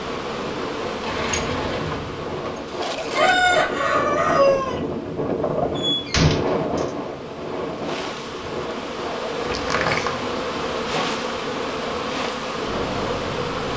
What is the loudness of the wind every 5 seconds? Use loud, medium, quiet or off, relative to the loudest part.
loud, loud, medium.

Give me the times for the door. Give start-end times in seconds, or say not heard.
1.0-2.5, 5.8-6.9, 9.4-10.2.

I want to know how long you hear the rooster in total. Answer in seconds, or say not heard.
2 s.